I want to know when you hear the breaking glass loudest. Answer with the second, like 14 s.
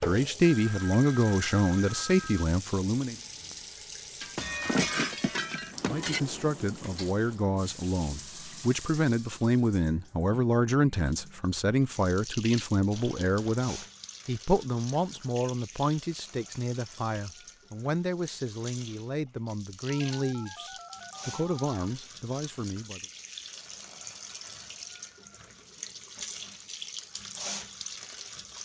5 s.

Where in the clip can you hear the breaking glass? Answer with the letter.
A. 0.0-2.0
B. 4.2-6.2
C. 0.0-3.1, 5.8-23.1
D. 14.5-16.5
B.